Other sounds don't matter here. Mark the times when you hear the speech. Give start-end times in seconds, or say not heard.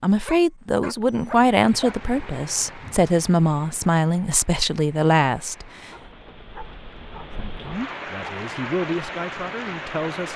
0.0-5.7, 7.4-10.3.